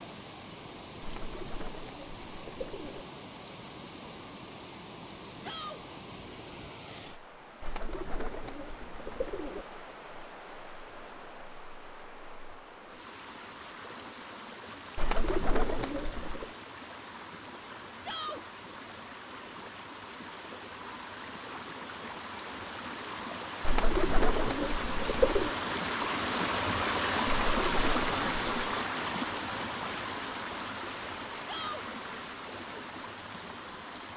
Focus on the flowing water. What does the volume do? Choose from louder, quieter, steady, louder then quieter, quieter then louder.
louder.